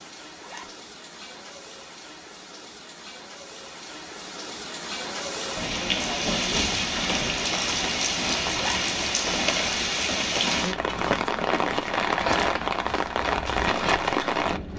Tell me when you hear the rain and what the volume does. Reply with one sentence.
The rain can be heard from 0.0 to 14.7 s, getting louder.